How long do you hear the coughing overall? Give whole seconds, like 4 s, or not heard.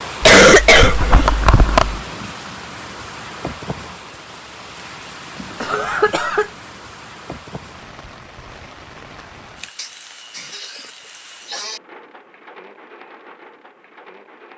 5 s.